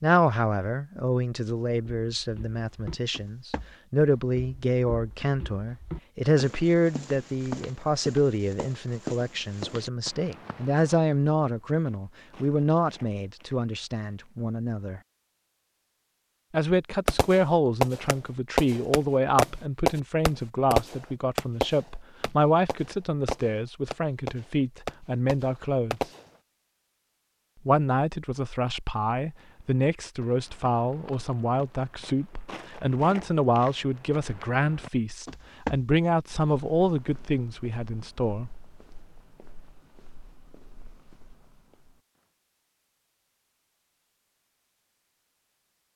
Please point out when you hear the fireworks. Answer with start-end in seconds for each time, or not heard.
17.1-26.2.